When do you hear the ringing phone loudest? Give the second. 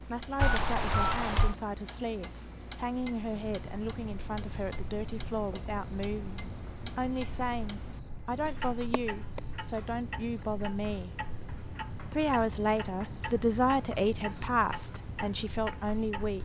1 s.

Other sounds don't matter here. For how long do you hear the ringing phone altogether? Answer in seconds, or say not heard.
2 s.